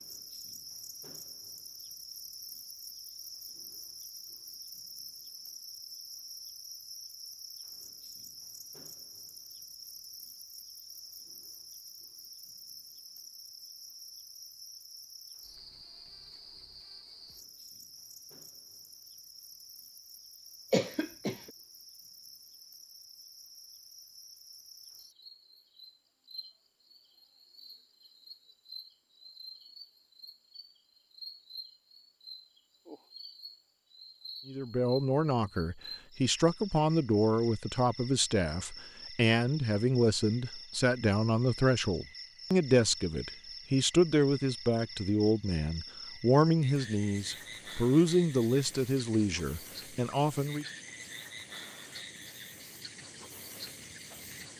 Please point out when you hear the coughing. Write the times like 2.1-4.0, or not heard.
20.7-21.5.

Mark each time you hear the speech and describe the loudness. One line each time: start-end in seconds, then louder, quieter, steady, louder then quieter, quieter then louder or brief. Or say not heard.
34.5-50.6 steady.